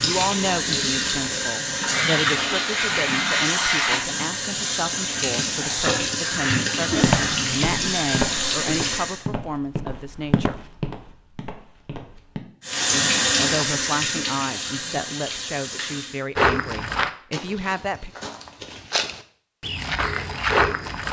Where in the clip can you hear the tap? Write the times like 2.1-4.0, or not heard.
0.0-9.2, 12.6-16.2.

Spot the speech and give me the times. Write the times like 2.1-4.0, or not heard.
0.0-10.6, 12.9-18.1.